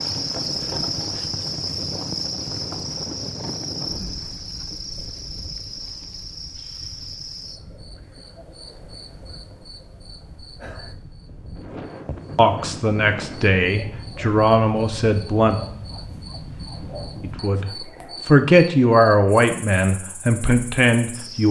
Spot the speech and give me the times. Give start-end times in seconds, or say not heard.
12.3-15.6, 17.2-21.4.